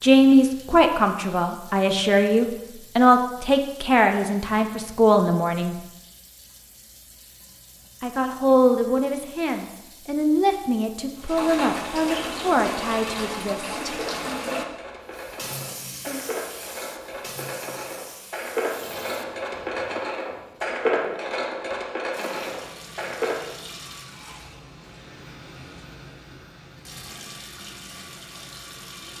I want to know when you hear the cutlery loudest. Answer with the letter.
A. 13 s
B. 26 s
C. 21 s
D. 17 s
C.